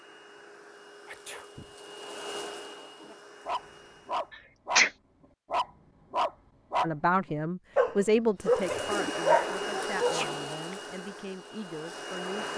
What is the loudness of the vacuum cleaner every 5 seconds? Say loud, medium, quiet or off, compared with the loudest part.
medium, loud, loud.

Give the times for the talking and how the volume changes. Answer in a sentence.
The talking can be heard from 6.8 to 12.5 s, getting quieter.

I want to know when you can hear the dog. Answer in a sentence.
You can hear the dog from 3.0 to 4.8 s, from 5.5 to 6.9 s and from 7.8 to 10.4 s.